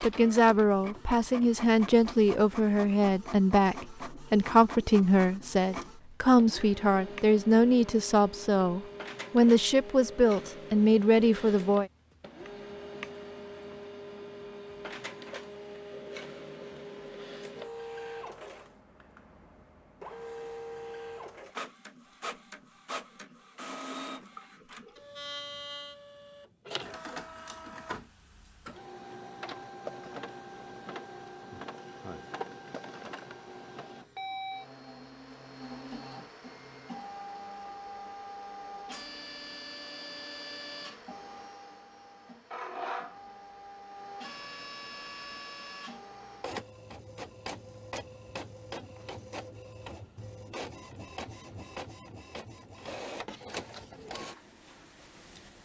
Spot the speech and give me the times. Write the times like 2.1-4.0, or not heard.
0.0-11.9.